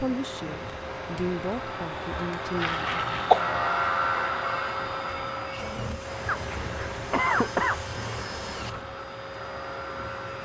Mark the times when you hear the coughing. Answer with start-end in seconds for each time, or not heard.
2.6-3.4, 6.2-7.8.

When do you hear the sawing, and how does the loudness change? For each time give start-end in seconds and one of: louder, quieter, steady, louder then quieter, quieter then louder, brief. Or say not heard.
0.0-10.3 louder then quieter.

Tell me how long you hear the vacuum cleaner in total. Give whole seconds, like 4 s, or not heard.
10 s.